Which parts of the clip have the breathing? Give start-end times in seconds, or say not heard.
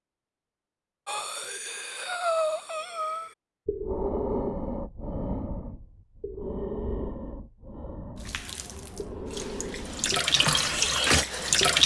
1.1-11.6.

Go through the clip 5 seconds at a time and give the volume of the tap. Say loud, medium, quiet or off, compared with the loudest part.
off, quiet, loud.